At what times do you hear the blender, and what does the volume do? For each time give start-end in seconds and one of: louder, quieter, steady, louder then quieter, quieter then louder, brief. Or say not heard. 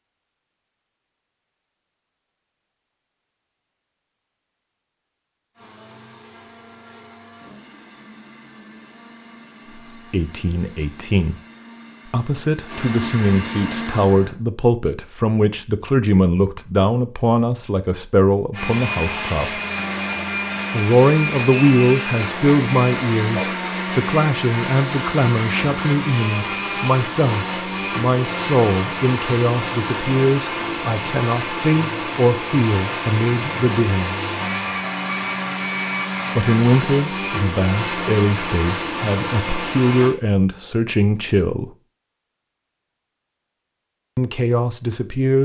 5.5-14.3 louder
18.5-40.1 steady.